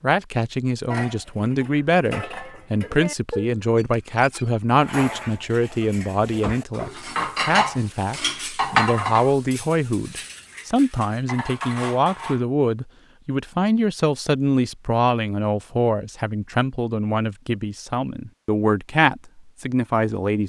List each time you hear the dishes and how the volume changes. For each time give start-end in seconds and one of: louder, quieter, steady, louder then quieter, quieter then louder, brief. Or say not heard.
0.8-12.4 louder then quieter.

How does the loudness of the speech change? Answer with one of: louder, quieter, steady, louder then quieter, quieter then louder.
steady.